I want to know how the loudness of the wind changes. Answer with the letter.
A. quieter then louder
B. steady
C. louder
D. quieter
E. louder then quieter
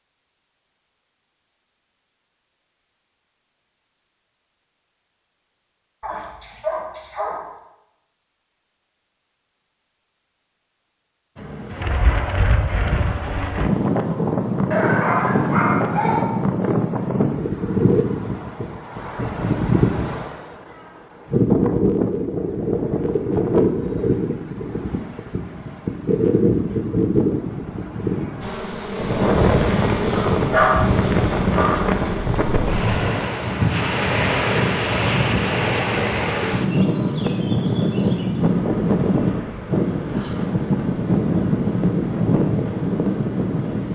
B.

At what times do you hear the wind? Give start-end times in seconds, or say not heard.
11.3-43.8.